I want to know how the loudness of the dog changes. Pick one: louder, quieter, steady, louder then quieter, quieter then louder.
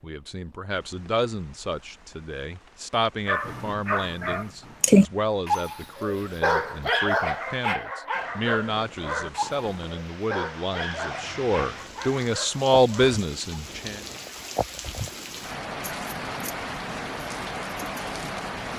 quieter.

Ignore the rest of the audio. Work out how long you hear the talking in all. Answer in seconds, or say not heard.
14 s.